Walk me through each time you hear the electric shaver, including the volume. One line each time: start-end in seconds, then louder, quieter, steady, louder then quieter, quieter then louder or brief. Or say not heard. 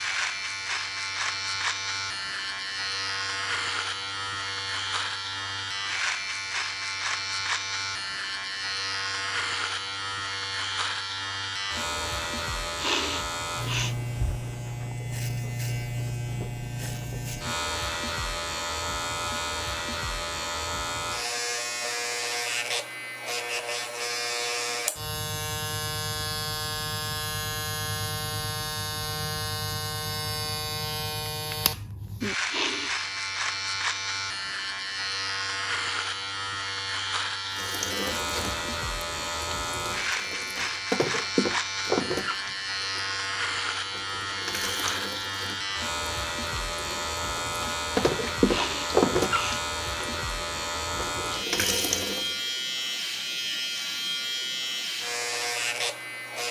0.0-56.4 steady.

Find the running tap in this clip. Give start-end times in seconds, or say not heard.
37.5-52.4.